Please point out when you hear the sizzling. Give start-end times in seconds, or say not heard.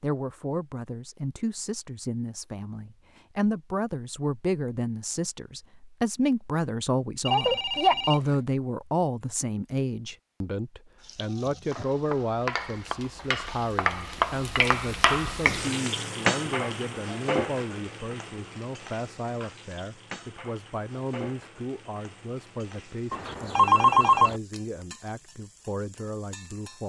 11.0-26.8.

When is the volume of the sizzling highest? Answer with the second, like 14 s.
15 s.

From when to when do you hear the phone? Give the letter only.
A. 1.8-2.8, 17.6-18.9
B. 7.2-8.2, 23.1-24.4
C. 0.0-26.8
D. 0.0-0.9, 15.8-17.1
B.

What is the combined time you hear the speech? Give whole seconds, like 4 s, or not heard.
27 s.